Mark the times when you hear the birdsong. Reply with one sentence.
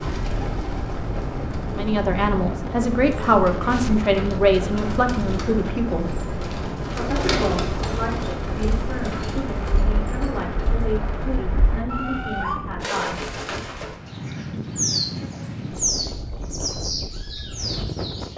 The birdsong can be heard from 0.0 to 18.3 s.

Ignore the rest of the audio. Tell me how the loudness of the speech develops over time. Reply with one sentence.
The volume of the speech goes down.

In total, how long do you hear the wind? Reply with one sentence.
The wind can be heard for 18 seconds in total.